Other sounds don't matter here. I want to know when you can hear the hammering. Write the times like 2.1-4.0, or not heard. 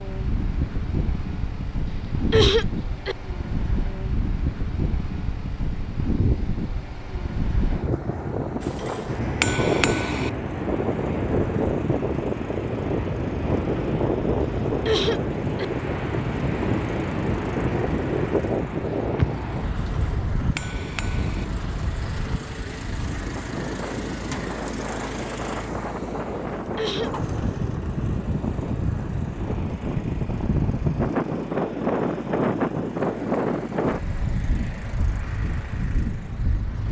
8.6-10.3, 19.8-21.4.